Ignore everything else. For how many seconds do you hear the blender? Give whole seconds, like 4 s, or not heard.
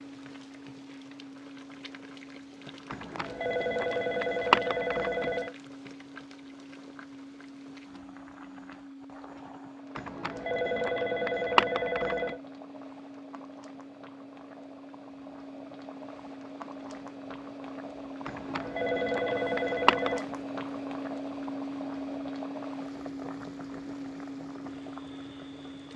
26 s.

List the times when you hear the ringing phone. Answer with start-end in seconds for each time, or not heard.
2.9-5.5, 9.9-12.4, 18.2-20.2.